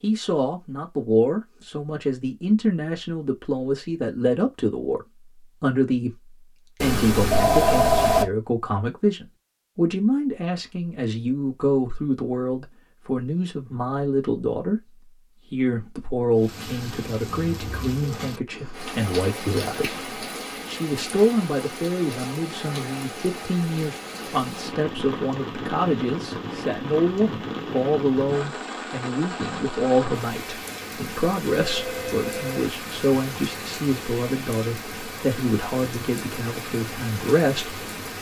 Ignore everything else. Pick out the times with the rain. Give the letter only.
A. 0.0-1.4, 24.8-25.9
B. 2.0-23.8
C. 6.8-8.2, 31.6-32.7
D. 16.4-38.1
D.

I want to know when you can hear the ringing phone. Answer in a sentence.
The ringing phone can be heard from 6.8 to 8.2 s and from 31.6 to 32.7 s.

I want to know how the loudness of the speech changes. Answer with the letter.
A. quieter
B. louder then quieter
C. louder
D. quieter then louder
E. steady
E.